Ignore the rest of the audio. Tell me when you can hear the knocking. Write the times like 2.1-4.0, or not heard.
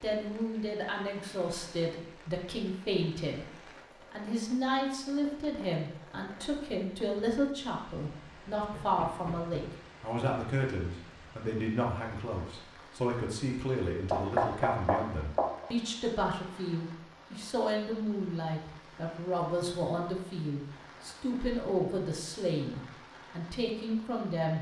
8.7-9.8, 14.1-15.7.